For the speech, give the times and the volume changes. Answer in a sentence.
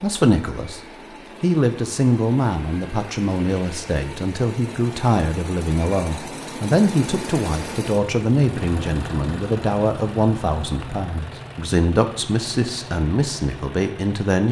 The speech can be heard briefly from 0.0 to 0.8 s; and from 1.4 to 14.4 s, at a steady volume.